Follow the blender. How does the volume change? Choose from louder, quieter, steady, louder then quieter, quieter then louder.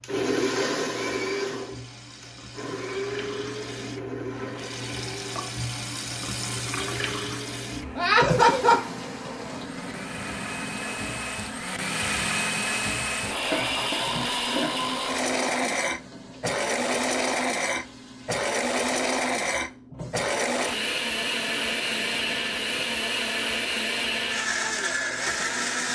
quieter then louder.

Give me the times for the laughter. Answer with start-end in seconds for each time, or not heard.
8.0-8.8, 13.3-14.9.